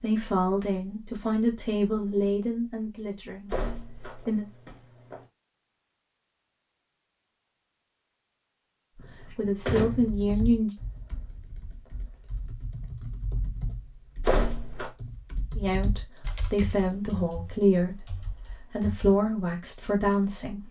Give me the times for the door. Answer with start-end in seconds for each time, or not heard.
3.5-5.2, 8.9-10.2, 14.2-14.9.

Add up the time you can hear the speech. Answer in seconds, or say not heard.
11 s.